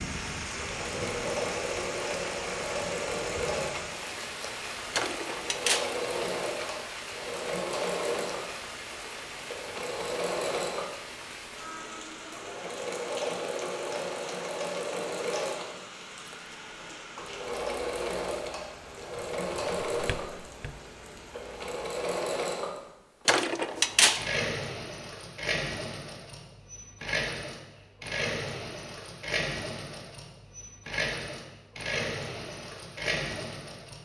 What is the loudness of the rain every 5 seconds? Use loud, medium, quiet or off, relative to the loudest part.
loud, loud, medium, medium, medium, off, off.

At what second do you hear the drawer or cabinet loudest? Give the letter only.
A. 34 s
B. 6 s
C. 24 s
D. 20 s
C.